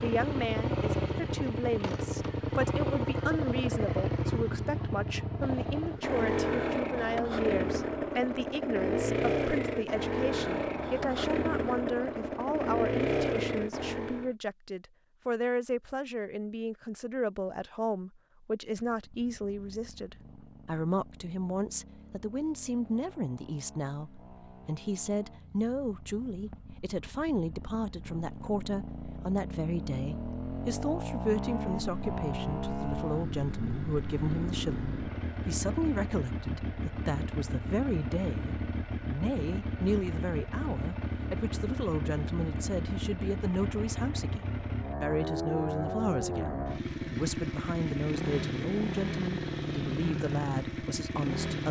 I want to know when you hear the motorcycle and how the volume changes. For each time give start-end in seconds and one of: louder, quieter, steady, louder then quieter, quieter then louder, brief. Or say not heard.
0.0-14.3 steady
18.8-51.6 louder.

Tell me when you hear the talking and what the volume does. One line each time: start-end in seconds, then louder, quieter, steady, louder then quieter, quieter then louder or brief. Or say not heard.
0.0-51.6 steady.